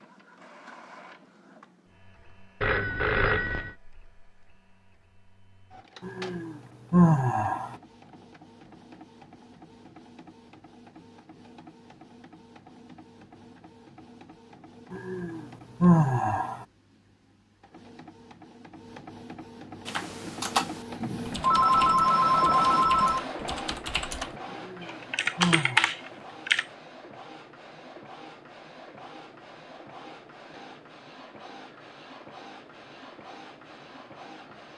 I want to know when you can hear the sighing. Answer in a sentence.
You can hear the sighing from 6.0 to 7.8 s, from 14.9 to 16.6 s and from 24.5 to 25.9 s.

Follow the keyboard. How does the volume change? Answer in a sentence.
The volume of the keyboard goes down, then up.